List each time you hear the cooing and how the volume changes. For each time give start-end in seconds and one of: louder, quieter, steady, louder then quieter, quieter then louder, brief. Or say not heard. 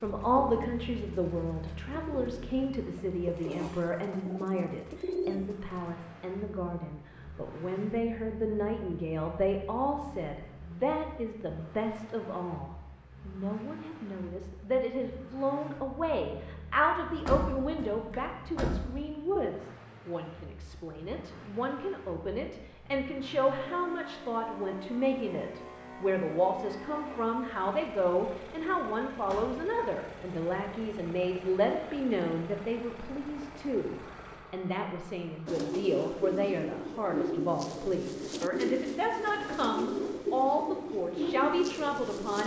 0.1-6.0 louder
35.5-42.4 steady.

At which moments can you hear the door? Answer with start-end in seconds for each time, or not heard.
17.1-18.9, 29.1-29.6.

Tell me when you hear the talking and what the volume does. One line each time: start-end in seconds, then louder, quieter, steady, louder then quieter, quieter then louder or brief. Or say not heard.
0.0-42.4 steady.